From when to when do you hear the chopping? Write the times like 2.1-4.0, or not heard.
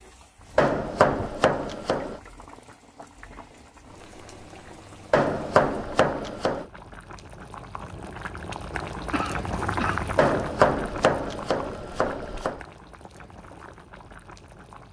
0.6-2.2, 5.1-6.7, 10.2-12.6.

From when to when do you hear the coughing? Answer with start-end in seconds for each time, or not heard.
9.1-10.2.